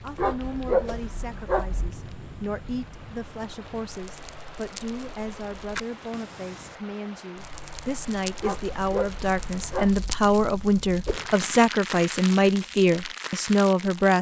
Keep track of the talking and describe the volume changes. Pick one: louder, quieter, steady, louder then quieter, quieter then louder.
louder.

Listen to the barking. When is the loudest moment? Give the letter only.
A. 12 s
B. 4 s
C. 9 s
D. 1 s
D.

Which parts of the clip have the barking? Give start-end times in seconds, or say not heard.
0.1-1.9, 8.4-10.2.